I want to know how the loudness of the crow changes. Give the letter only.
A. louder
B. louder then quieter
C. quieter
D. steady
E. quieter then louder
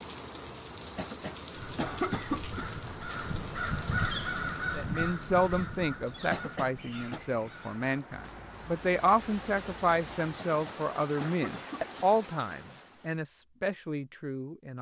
B.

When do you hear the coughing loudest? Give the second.
2 s.